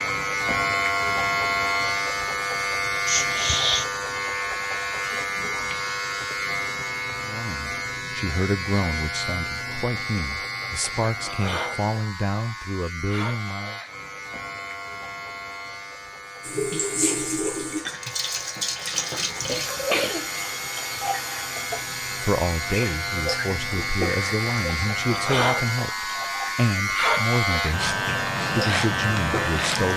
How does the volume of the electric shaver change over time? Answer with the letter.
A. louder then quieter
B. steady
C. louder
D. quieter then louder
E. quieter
D.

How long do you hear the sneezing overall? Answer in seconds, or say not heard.
2 s.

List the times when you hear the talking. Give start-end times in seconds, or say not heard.
7.2-13.8, 22.1-29.9.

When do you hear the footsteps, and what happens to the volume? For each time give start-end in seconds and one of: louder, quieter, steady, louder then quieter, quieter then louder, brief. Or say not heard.
not heard.